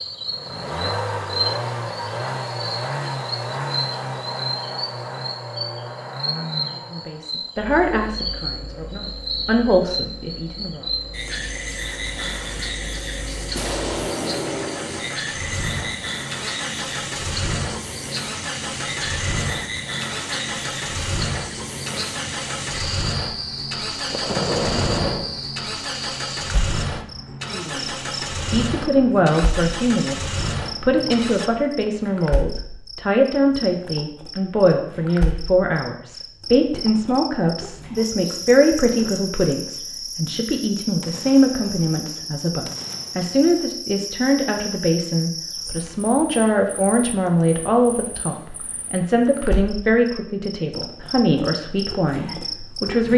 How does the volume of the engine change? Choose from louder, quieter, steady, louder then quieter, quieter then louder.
quieter then louder.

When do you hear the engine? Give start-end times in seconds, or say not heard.
0.0-31.5.